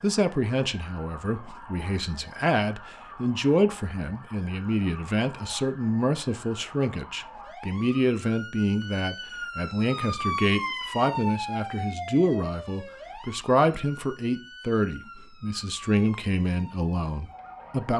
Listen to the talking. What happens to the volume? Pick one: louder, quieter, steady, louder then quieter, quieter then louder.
steady.